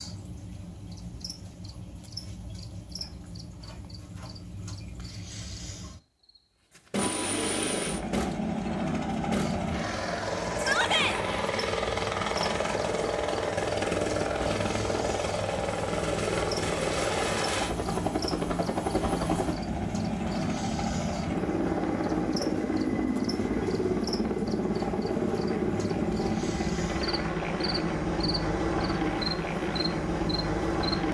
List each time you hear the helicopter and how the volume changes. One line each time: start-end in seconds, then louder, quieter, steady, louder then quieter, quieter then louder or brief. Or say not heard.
7.0-31.0 steady.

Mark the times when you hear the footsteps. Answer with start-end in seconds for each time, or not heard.
not heard.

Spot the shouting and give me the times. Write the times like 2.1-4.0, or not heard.
10.6-11.2.